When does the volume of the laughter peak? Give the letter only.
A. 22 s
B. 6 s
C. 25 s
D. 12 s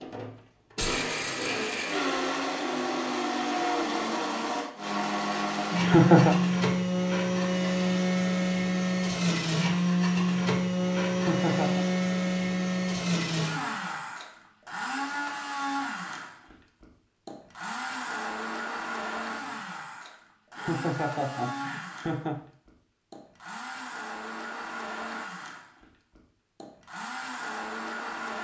B.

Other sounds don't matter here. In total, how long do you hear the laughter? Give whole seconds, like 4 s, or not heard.
3 s.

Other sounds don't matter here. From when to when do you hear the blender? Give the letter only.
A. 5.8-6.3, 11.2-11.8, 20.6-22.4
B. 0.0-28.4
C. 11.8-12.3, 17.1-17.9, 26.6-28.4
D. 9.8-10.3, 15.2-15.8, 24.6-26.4
B.